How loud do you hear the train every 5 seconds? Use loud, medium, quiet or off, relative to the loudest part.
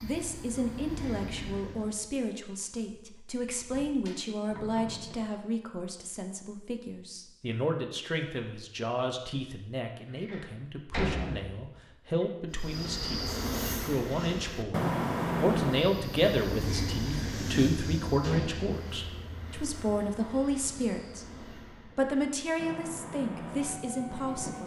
medium, off, loud, loud, medium.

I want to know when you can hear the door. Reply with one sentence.
You can hear the door from 3.5 to 5.2 s, from 10.1 to 12.2 s and from 18.2 to 18.8 s.